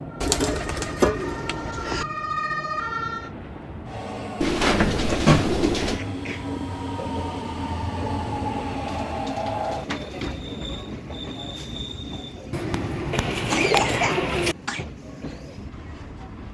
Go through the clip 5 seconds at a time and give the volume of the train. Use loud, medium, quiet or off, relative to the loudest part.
medium, loud, medium, medium.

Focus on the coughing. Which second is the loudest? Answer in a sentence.
The loudest moment of the coughing is at 14 seconds.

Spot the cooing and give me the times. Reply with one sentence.
You can hear the cooing from 0.2 to 2.0 s, from 4.4 to 6.0 s, from 8.8 to 10.4 s and from 12.5 to 14.6 s.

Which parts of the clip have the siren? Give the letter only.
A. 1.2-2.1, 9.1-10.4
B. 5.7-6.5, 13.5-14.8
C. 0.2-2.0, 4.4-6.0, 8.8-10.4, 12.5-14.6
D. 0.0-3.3
D.